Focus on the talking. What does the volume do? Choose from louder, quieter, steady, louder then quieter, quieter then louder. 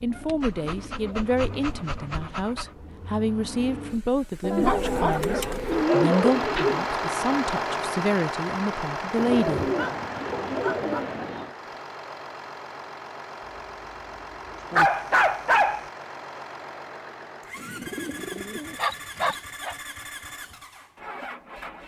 steady.